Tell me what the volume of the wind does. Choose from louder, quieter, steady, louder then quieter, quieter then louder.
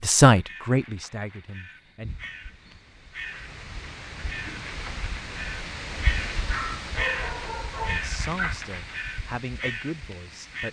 louder then quieter.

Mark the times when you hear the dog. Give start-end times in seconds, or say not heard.
6.5-8.6.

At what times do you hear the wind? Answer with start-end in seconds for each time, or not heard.
2.0-10.6.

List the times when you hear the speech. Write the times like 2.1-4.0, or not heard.
0.0-2.1, 7.8-10.6.